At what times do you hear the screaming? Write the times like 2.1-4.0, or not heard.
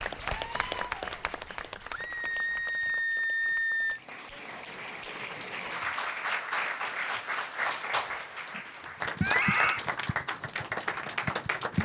1.9-4.0, 9.2-9.8.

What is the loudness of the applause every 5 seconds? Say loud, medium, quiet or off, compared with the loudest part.
medium, loud, loud.